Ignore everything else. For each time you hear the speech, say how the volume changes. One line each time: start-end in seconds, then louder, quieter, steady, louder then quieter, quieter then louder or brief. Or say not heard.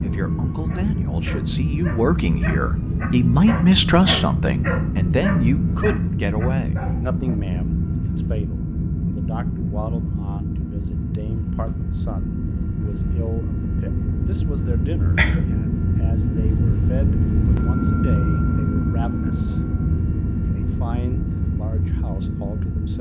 0.0-19.6 quieter
20.4-22.9 brief.